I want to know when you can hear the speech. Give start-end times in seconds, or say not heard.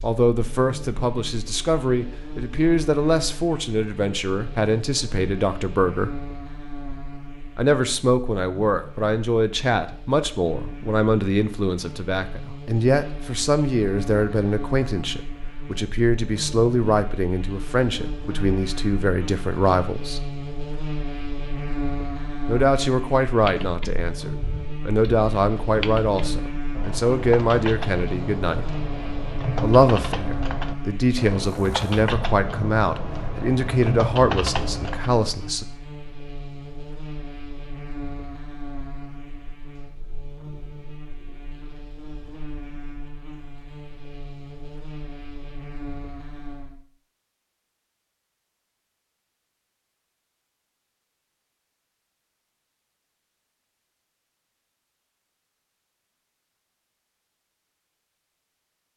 0.0-6.2, 7.5-20.3, 22.4-28.7, 29.6-35.6.